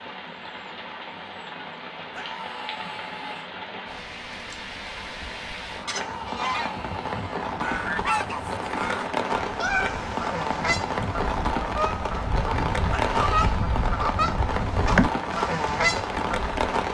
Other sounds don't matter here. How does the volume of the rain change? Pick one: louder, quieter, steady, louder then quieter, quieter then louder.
louder.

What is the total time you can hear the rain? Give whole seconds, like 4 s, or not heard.
17 s.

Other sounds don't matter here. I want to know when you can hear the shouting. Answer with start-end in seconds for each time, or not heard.
2.1-3.5, 5.9-7.5, 12.9-13.6.